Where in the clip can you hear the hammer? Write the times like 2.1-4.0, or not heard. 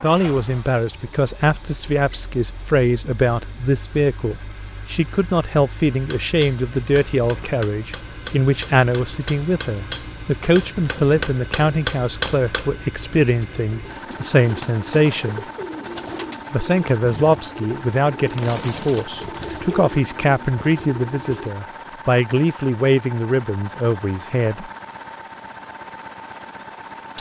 6.1-12.7.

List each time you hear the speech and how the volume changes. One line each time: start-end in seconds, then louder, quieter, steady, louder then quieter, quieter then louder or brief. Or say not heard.
0.0-15.4 steady
16.5-24.7 steady.